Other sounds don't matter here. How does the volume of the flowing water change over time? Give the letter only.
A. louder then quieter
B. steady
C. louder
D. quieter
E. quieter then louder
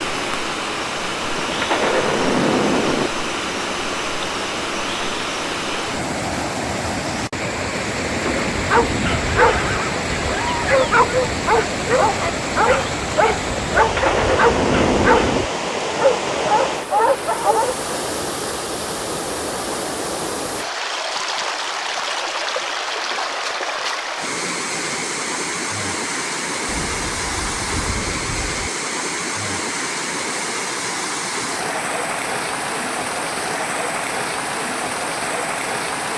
B.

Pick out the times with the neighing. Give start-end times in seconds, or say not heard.
8.1-10.9.